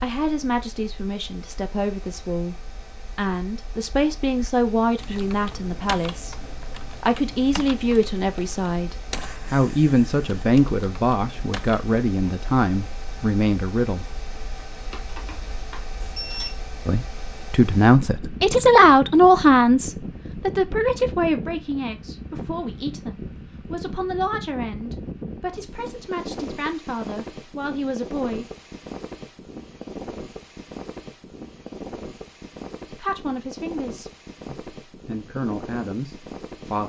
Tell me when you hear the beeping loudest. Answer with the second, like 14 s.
16 s.